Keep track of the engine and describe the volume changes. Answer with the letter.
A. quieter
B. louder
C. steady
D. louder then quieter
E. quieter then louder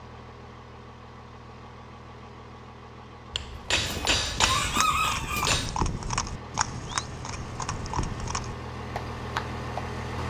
B.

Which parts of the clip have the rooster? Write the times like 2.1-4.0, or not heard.
3.9-5.6.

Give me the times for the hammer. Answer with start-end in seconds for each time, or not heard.
3.3-5.8.